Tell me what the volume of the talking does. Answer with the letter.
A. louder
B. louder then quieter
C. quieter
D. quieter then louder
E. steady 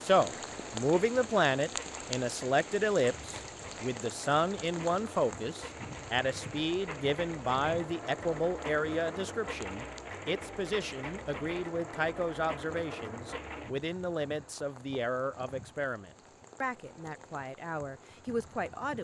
C.